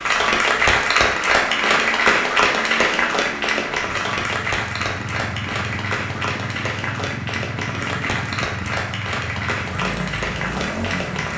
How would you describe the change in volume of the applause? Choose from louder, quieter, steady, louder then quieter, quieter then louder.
quieter.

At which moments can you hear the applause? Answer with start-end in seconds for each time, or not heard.
0.0-11.3.